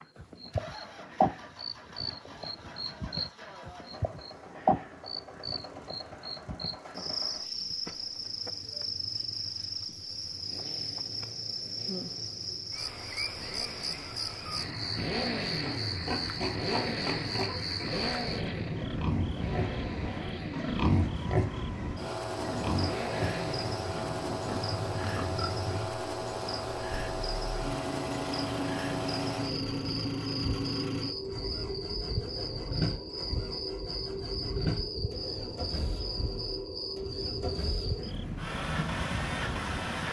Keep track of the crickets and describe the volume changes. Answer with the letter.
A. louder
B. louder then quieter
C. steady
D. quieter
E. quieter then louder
C.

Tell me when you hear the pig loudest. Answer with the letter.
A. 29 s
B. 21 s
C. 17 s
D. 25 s
B.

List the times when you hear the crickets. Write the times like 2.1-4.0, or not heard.
0.0-40.0.